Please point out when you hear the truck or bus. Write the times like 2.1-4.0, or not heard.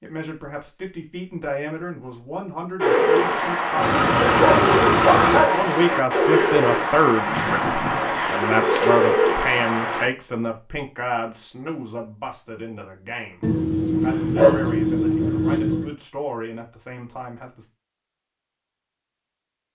3.8-5.5.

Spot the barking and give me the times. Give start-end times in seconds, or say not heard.
4.2-5.7, 13.4-15.9.